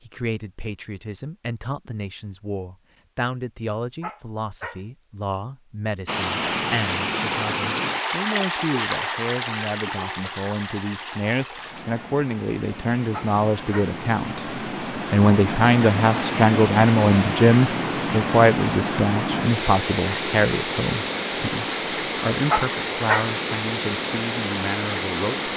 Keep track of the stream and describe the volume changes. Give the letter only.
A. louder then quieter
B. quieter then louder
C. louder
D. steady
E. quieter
B.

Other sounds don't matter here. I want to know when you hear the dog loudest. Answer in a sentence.
The loudest moment of the dog is at 23 seconds.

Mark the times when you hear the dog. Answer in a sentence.
You can hear the dog from 4.0 to 4.8 s, from 13.1 to 13.9 s and from 22.5 to 23.3 s.